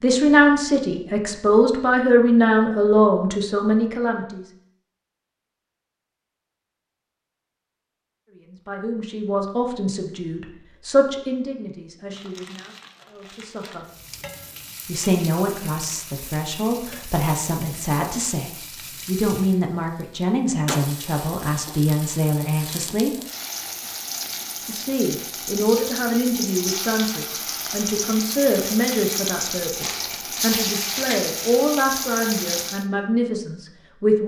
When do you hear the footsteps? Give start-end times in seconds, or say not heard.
not heard.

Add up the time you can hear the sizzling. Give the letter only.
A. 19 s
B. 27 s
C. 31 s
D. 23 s
A.